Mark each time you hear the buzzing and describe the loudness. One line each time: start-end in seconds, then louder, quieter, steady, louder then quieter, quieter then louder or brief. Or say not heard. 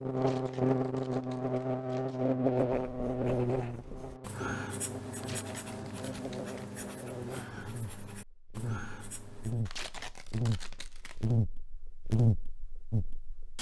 0.0-13.5 quieter then louder.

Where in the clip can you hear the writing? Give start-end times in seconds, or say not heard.
2.6-9.7.